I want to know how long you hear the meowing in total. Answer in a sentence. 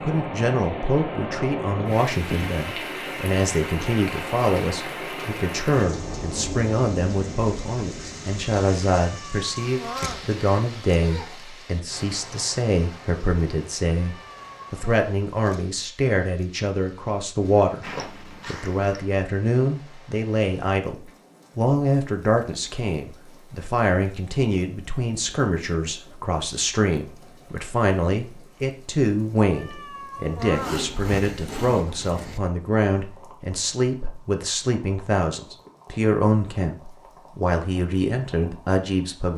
The meowing can be heard for 4 seconds in total.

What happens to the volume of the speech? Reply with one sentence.
The volume of the speech stays about the same.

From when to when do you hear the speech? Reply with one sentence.
You can hear the speech from 0.0 to 39.3 s.